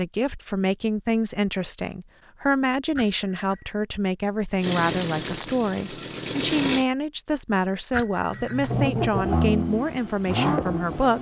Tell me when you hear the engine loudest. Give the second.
9 s.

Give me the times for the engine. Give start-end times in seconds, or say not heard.
4.6-6.8, 8.3-11.1.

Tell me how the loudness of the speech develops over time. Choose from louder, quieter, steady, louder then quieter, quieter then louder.
steady.